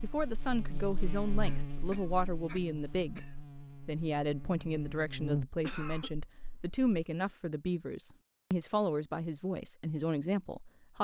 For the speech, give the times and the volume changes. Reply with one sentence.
You can hear the speech from 0.0 to 10.9 s, at a steady volume.